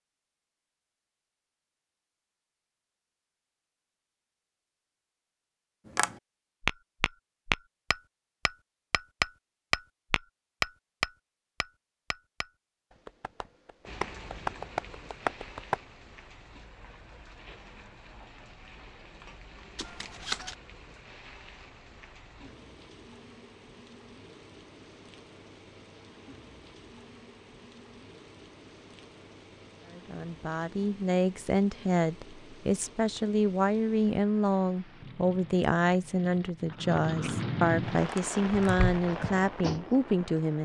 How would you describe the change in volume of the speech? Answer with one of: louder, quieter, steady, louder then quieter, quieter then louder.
steady.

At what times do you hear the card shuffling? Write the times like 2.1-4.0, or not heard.
19.8-20.6.